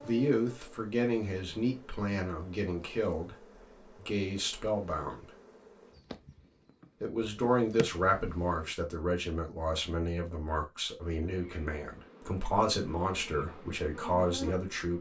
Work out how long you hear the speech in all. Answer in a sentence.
The speech can be heard for 13 seconds in total.